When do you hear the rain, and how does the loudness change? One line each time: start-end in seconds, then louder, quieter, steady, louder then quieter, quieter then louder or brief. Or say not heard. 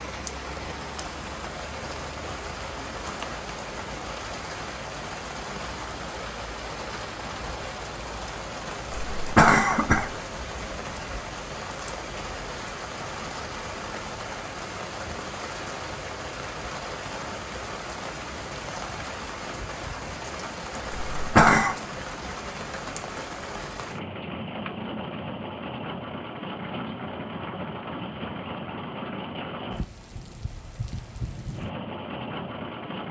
0.0-33.0 steady.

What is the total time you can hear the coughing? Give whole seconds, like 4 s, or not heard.
2 s.